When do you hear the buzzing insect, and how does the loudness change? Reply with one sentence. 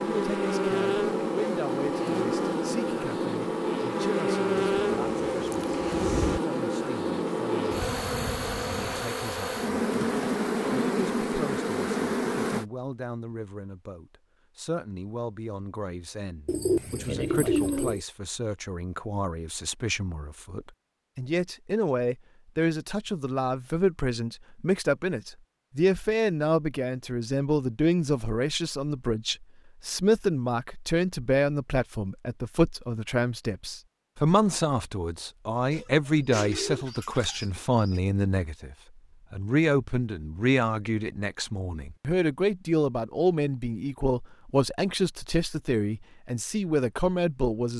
You can hear the buzzing insect from 0.0 to 12.7 s, at a steady volume.